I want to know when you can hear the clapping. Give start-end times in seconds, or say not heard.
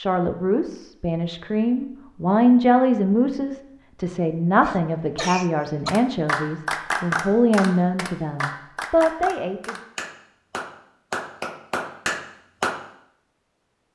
5.8-12.8.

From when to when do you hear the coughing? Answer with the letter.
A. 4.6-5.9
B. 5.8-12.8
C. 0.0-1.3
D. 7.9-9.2
A.